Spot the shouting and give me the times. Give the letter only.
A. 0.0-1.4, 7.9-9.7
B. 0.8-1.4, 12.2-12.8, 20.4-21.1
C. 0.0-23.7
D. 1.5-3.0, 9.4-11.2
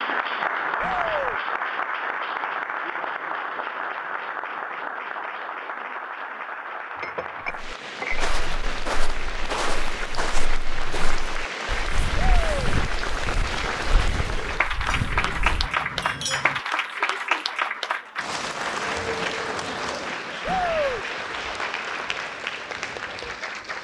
B.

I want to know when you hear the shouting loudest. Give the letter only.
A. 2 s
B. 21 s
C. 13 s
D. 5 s
B.